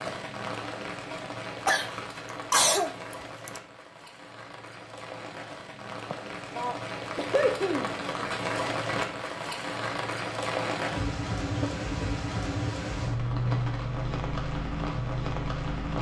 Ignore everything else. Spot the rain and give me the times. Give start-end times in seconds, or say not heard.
0.0-15.9.